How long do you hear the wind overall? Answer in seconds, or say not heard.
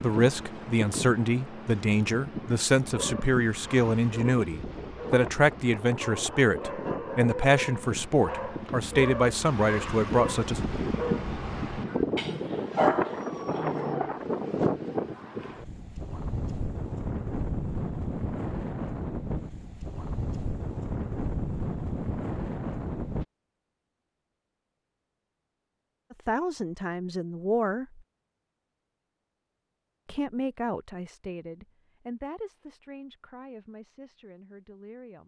23 s.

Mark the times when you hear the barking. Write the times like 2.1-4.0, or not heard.
2.8-14.2.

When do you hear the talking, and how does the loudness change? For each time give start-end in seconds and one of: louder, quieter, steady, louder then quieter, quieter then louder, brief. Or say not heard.
0.0-10.6 steady
26.1-28.0 brief
30.1-35.2 quieter.